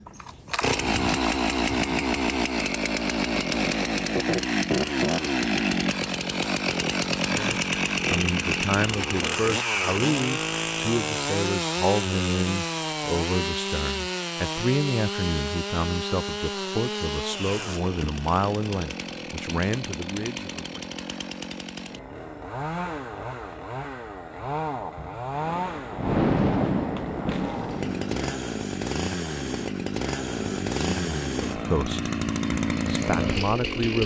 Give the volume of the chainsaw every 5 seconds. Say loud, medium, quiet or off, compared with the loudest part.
loud, loud, loud, medium, medium, medium, loud.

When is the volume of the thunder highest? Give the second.
26 s.